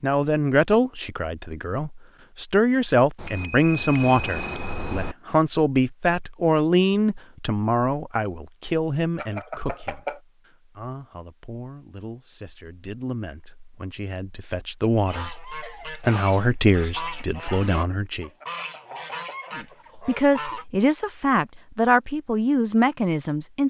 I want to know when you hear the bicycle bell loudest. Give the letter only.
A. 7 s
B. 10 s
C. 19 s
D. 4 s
D.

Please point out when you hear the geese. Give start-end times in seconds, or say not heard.
15.1-20.6.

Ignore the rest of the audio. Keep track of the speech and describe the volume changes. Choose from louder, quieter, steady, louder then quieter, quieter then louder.
quieter then louder.